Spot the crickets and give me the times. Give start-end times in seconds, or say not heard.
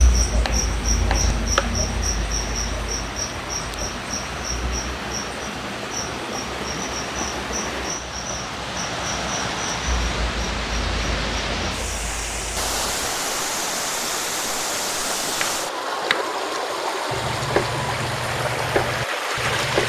0.0-13.2.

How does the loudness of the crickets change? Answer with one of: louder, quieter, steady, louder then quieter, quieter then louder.
quieter.